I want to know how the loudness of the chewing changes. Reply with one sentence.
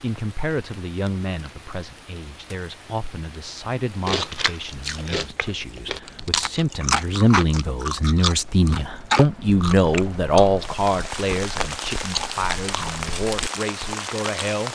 The volume of the chewing goes up, then down.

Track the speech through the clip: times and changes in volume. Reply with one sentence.
You can hear the speech from 0.0 to 14.7 s, getting louder then quieter.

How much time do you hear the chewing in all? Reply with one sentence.
The chewing can be heard for 10 seconds in total.